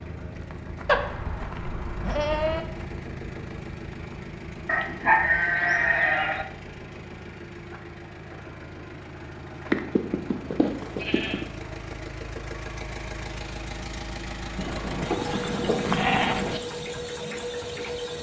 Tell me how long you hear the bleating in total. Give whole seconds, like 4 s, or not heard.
7 s.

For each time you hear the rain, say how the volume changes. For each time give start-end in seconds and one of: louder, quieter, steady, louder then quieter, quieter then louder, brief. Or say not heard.
not heard.